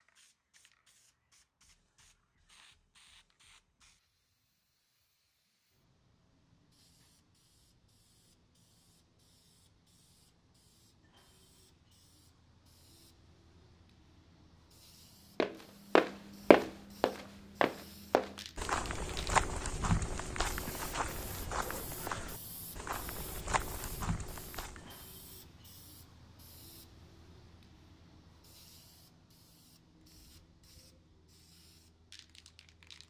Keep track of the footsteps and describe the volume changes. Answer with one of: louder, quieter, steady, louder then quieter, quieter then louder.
quieter.